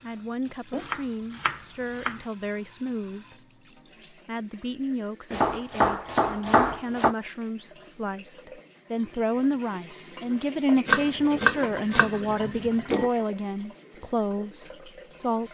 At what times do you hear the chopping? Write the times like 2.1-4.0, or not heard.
0.7-2.2, 5.3-7.2, 10.8-13.1.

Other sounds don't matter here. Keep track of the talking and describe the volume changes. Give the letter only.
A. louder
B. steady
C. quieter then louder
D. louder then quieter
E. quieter
A.